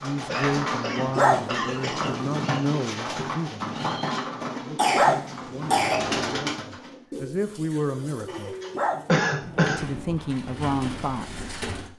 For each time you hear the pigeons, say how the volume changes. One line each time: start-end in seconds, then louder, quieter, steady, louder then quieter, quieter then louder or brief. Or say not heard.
0.0-11.9 quieter.